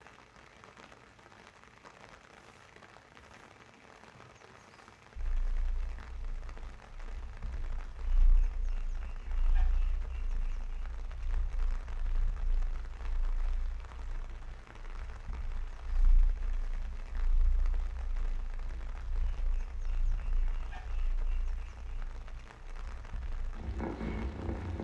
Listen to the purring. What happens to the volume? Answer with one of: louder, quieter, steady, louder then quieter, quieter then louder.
louder.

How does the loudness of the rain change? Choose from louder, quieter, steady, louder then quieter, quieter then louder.
steady.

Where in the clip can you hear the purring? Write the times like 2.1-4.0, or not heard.
5.2-24.7.